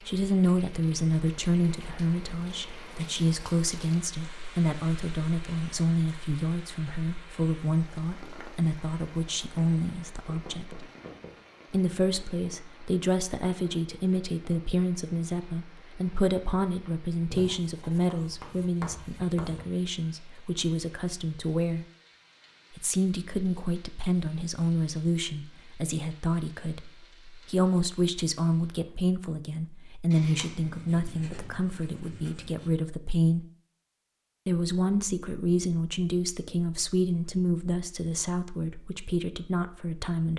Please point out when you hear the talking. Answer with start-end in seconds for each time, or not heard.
0.1-10.8, 11.7-21.9, 22.8-33.5, 34.5-40.3.